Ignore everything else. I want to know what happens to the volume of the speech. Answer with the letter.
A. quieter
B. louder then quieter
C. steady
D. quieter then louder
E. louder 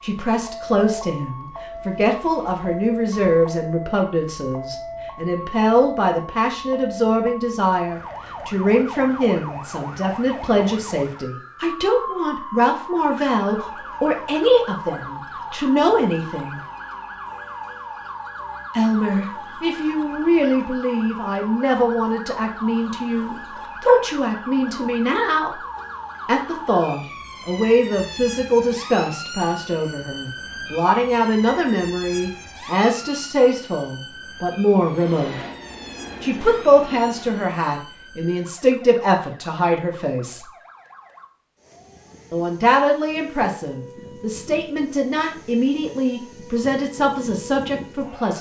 C.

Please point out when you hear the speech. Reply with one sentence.
You can hear the speech from 0.0 to 16.6 s, from 18.8 to 25.6 s, from 26.2 to 35.4 s, from 36.2 to 40.5 s and from 42.3 to 48.3 s.